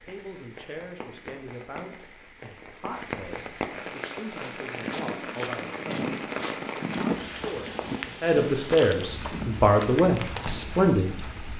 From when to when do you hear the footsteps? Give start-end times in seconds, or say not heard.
4.3-10.8.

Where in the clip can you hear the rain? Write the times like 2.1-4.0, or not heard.
0.0-11.5.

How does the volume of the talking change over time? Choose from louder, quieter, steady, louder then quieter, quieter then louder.
louder.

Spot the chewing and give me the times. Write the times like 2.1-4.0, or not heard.
not heard.